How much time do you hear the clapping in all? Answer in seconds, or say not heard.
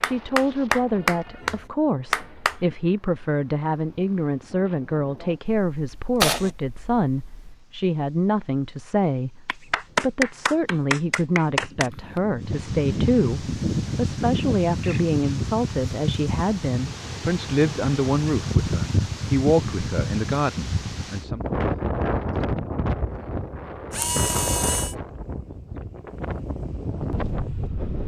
5 s.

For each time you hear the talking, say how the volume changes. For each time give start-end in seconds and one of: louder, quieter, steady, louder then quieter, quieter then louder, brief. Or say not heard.
0.0-21.4 steady.